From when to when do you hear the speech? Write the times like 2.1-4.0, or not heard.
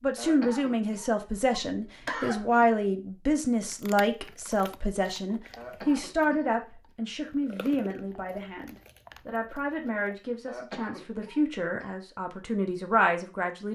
0.0-13.7.